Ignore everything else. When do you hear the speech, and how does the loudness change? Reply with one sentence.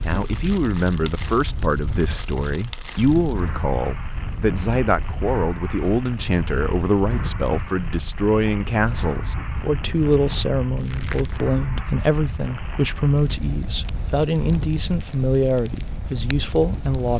The speech can be heard from 0.0 to 17.1 s, at a steady volume.